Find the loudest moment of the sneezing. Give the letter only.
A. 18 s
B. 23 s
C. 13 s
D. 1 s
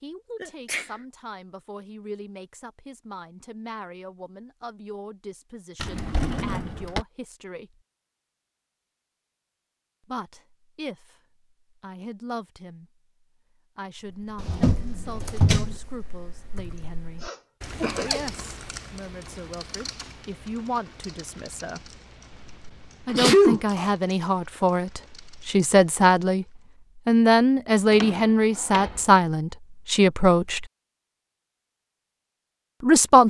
B.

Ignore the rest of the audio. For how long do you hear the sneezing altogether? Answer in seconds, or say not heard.
3 s.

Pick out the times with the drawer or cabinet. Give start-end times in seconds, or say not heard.
5.8-7.0, 14.3-15.8, 27.9-29.1.